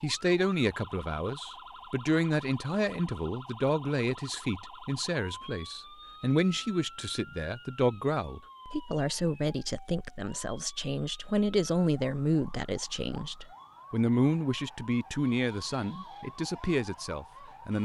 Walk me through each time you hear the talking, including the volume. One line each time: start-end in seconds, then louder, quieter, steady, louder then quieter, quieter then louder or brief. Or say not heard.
0.0-17.8 steady.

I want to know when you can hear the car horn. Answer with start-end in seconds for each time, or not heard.
not heard.